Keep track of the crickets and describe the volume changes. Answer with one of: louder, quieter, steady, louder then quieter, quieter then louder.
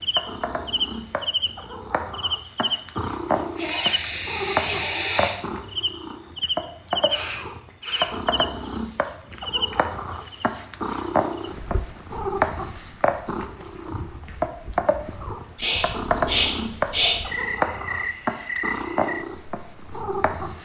quieter then louder.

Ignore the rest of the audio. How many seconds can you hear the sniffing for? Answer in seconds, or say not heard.
5 s.